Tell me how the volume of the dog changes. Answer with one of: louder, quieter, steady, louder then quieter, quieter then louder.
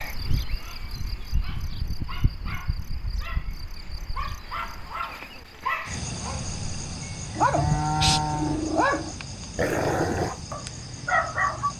louder.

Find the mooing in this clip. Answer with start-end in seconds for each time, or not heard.
7.2-8.6.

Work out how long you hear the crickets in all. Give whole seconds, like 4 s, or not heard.
12 s.